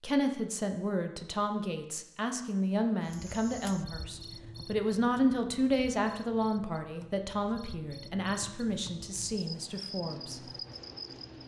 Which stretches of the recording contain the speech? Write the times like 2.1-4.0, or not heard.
0.0-10.4.